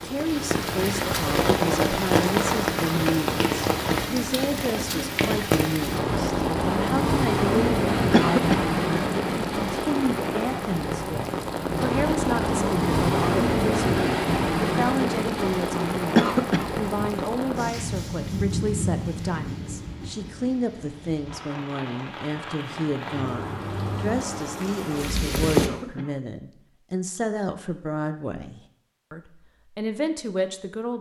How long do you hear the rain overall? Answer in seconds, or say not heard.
26 s.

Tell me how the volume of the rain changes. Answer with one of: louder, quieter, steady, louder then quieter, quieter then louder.
quieter.